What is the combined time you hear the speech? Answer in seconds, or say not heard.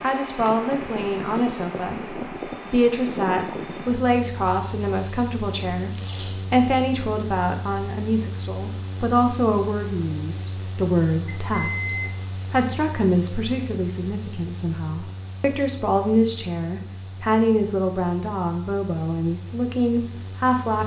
20 s.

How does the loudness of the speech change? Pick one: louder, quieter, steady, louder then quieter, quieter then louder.
steady.